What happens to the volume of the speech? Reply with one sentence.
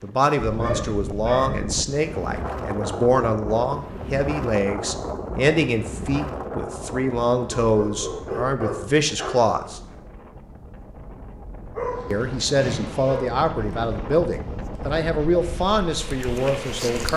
The loudness of the speech stays about the same.